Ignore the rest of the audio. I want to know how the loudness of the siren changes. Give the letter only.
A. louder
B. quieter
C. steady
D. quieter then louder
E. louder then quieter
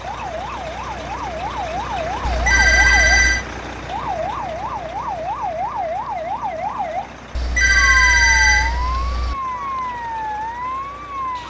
C.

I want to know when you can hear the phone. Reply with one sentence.
The phone can be heard from 2.2 to 3.5 s and from 7.3 to 9.3 s.